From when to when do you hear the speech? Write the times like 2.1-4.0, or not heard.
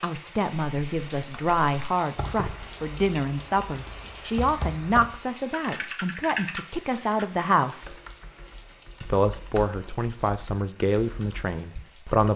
0.0-7.9, 9.0-12.3.